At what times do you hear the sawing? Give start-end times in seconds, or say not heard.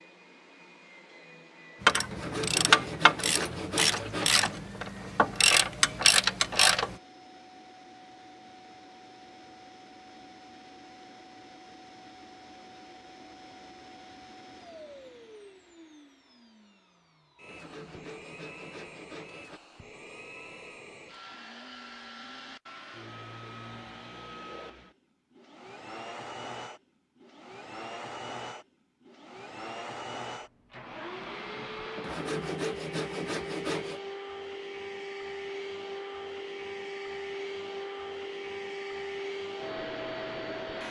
2.1-4.7, 17.4-19.6, 32.0-34.0.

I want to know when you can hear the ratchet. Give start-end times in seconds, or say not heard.
1.8-7.0.